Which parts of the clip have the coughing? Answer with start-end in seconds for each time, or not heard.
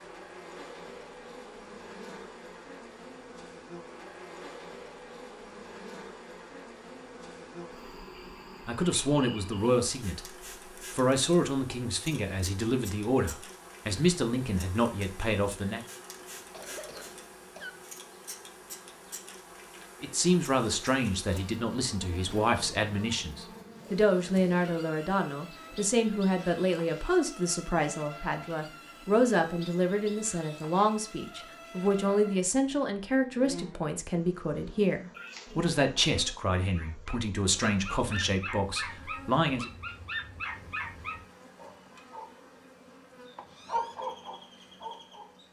16.1-17.9, 35.1-35.5.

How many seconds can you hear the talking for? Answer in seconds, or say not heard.
27 s.